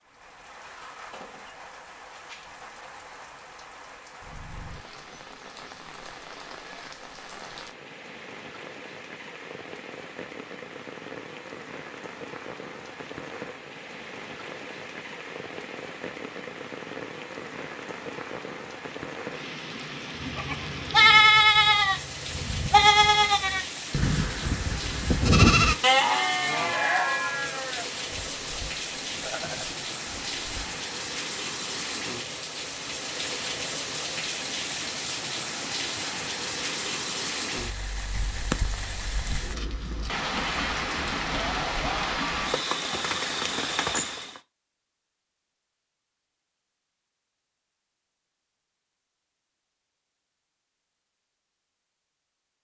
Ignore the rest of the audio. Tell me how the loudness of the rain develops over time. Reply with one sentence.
The loudness of the rain goes up.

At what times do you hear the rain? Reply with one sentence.
The rain can be heard from 0.0 to 44.4 s.